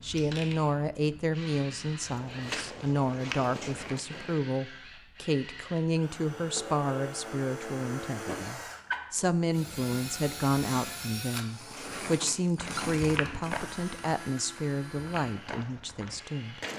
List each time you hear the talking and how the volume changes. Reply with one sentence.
The talking can be heard from 0.0 to 16.6 s, at a steady volume.